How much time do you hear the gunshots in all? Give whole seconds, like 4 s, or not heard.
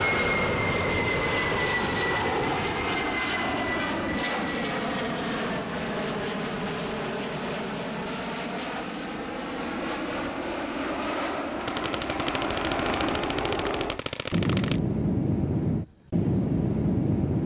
3 s.